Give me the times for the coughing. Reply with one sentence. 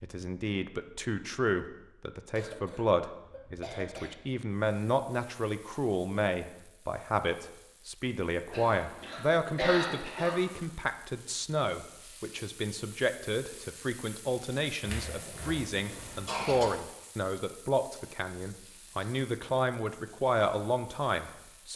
You can hear the coughing from 2.4 to 4.1 s, from 8.5 to 10.7 s and from 14.8 to 16.6 s.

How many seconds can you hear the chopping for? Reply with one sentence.
You can't hear the chopping here.